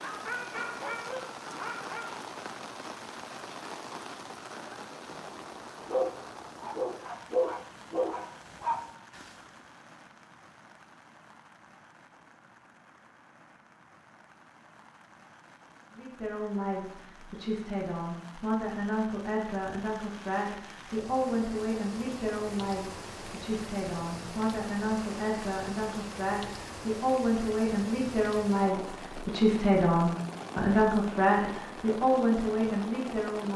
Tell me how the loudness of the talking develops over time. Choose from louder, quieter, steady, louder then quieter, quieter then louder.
louder.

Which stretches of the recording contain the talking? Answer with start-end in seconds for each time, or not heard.
15.9-33.5.